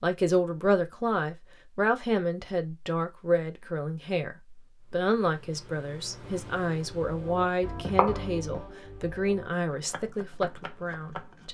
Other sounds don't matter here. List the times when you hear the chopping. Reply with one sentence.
You can hear the chopping from 6.2 to 11.4 s.